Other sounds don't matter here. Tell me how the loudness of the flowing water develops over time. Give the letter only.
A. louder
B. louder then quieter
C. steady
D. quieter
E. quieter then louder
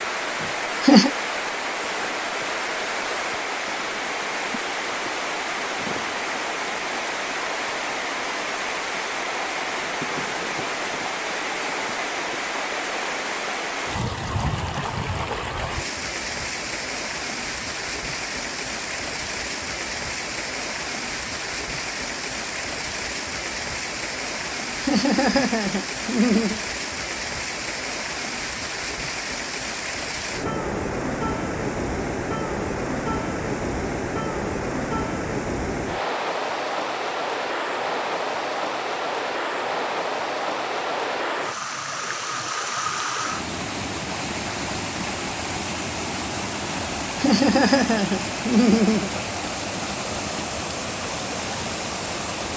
C.